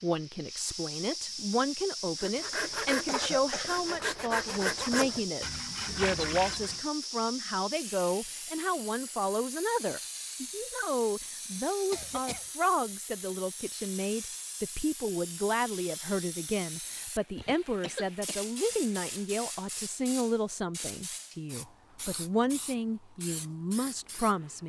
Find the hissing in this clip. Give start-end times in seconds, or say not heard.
0.0-24.6.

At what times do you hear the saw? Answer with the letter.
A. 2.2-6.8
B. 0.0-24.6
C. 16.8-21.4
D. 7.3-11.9
A.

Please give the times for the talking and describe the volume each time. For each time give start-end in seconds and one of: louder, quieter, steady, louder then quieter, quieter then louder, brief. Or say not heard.
0.0-24.6 steady.